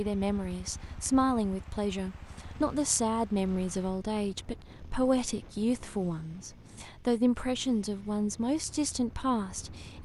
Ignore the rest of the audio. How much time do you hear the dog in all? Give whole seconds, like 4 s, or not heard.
not heard.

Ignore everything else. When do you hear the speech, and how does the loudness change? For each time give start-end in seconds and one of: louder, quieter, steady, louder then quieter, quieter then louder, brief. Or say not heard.
0.0-10.0 steady.